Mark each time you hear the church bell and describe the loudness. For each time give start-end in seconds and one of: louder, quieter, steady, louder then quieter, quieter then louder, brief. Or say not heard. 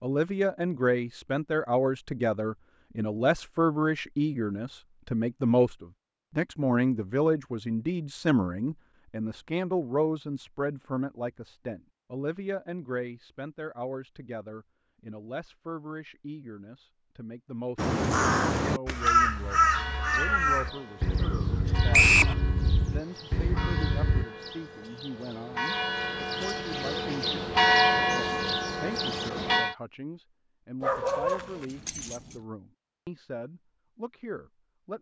19.6-29.8 louder.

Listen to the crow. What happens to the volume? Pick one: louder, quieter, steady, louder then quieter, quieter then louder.
quieter.